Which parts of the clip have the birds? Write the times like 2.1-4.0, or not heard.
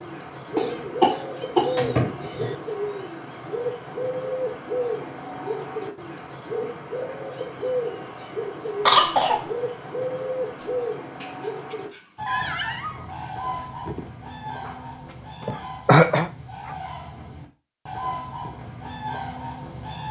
0.0-20.0.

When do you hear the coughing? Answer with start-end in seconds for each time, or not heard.
0.6-2.5, 8.8-9.4, 15.4-16.3.